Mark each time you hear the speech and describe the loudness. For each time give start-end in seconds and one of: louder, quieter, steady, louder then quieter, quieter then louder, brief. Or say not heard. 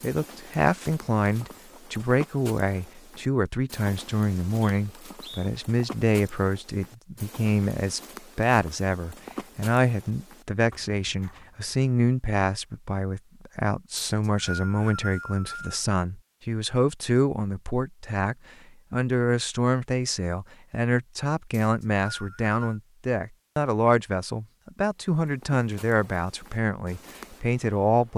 0.0-28.1 steady.